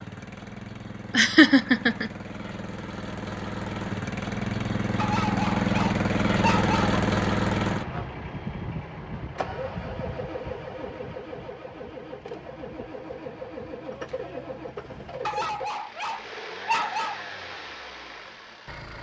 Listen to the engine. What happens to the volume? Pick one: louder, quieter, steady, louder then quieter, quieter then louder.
louder then quieter.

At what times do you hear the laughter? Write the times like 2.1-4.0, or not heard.
1.1-2.1.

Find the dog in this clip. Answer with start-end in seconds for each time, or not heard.
5.0-7.0, 15.2-17.2.